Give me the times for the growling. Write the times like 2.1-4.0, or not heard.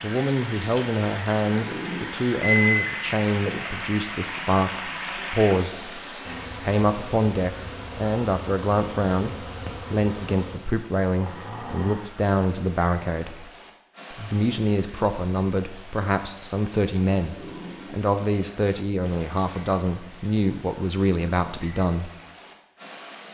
1.5-2.1, 11.1-12.0, 17.2-18.0.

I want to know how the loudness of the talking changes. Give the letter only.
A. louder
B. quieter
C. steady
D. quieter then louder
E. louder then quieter
C.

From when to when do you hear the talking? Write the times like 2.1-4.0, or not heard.
0.0-6.0, 6.6-13.4, 14.1-22.1.